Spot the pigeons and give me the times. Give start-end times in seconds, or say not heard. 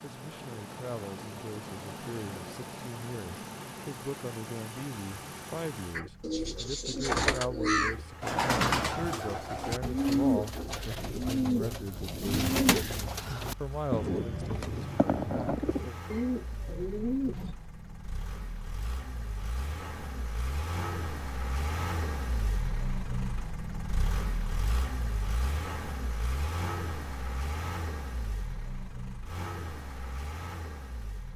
6.0-17.6.